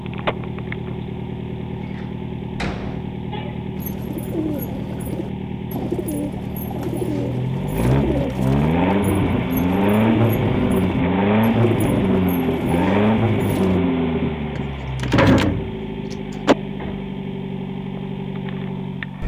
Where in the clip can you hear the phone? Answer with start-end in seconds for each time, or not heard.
not heard.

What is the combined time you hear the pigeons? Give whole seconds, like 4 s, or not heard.
10 s.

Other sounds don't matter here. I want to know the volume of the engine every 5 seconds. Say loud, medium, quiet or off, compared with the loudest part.
medium, loud, loud, medium.